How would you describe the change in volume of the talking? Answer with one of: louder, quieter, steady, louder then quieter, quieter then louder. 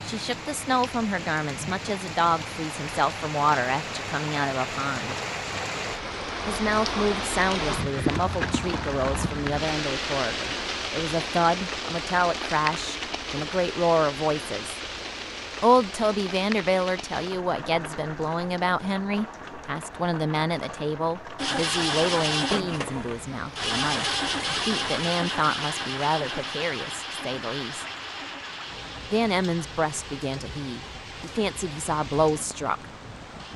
steady.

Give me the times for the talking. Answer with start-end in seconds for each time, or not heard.
0.0-5.2, 6.5-14.8, 15.6-27.9, 29.1-32.9.